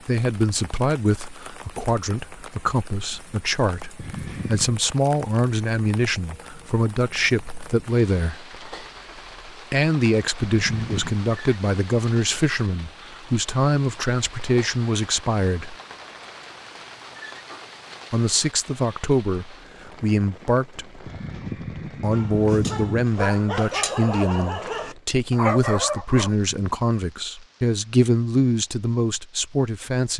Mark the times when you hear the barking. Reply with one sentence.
You can hear the barking from 22.1 to 26.3 s.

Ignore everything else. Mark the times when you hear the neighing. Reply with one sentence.
You can hear the neighing from 4.0 to 4.8 s, from 10.5 to 11.2 s and from 21.1 to 23.1 s.